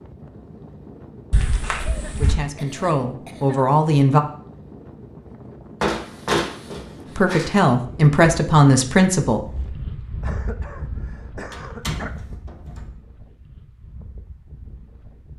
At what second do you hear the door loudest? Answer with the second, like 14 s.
6 s.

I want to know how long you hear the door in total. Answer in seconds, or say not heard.
4 s.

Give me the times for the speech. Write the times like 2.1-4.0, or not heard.
2.1-4.2, 7.2-9.7.